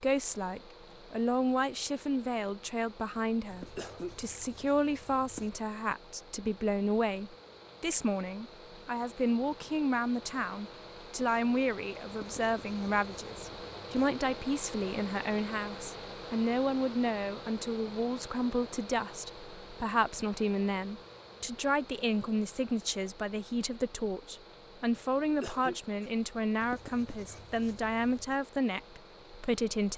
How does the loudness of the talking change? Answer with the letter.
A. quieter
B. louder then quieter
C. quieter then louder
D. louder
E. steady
E.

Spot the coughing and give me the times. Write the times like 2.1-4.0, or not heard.
3.6-4.2, 25.2-26.1.